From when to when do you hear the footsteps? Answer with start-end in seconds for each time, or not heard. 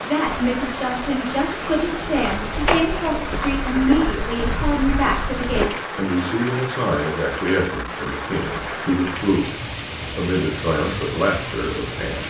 0.2-5.7.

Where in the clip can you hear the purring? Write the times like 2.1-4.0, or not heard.
not heard.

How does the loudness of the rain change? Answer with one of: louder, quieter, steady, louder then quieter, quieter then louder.
steady.